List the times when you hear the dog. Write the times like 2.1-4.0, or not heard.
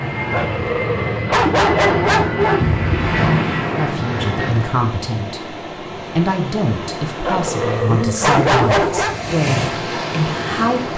0.3-2.8, 7.2-9.2.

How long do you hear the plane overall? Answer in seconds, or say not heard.
5 s.